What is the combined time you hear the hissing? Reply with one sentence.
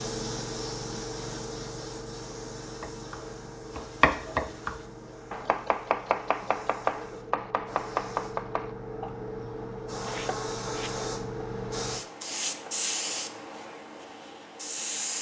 You can hear the hissing for 15 seconds altogether.